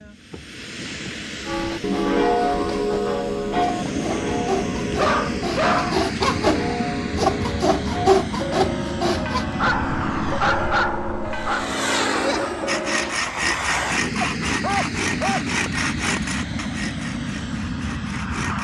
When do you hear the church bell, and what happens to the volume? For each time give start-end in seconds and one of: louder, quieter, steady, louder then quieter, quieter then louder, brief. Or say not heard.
1.4-13.2 quieter.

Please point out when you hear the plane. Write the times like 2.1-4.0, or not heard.
0.0-18.5.